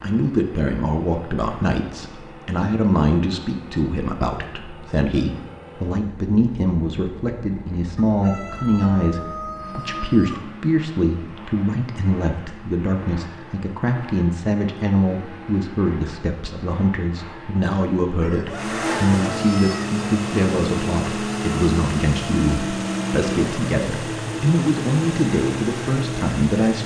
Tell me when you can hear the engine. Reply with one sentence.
You can hear the engine from 0.0 to 26.8 s.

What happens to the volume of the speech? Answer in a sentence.
The volume of the speech stays about the same.